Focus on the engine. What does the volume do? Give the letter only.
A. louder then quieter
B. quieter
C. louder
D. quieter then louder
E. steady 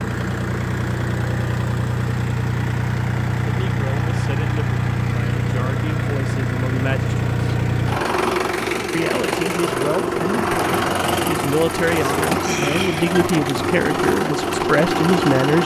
E.